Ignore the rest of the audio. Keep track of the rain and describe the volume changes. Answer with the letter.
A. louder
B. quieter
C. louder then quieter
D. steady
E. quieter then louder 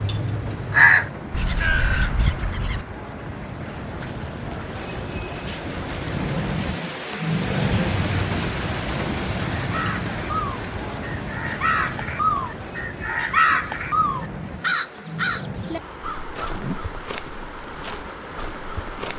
C.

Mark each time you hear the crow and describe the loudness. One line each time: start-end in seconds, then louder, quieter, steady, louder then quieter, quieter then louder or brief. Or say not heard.
0.0-2.9 brief
9.6-19.1 louder then quieter.